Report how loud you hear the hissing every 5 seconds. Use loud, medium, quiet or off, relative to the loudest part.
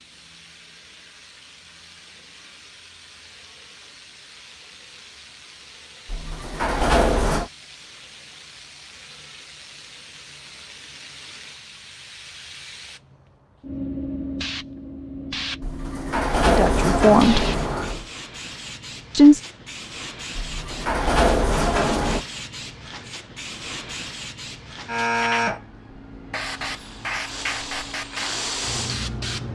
quiet, quiet, medium, medium, medium, loud.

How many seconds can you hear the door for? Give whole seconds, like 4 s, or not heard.
6 s.